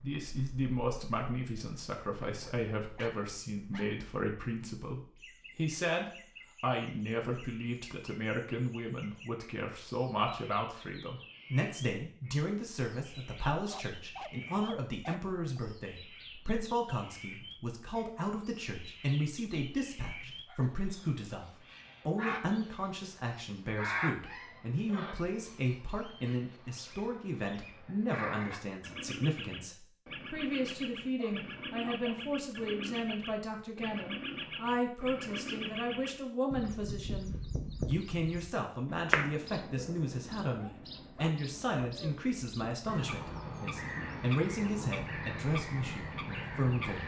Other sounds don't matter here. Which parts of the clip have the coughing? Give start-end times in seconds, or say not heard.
not heard.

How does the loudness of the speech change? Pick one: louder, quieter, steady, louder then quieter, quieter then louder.
steady.